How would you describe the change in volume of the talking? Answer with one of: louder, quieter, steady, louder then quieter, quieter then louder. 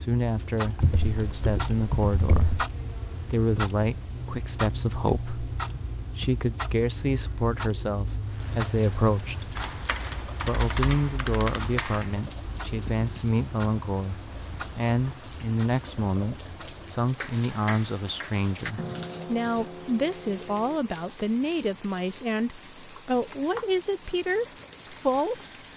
steady.